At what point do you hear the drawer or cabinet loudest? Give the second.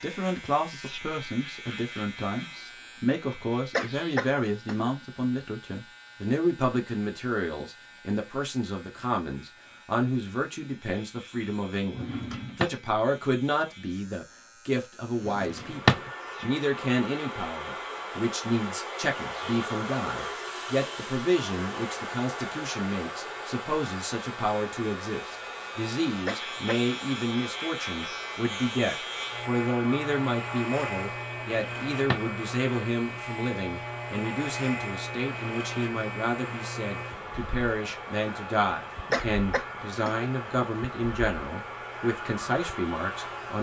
16 s.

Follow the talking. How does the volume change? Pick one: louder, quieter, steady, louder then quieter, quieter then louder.
steady.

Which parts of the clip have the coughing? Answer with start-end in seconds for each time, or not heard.
3.3-4.9, 26.2-26.8, 39.1-40.3.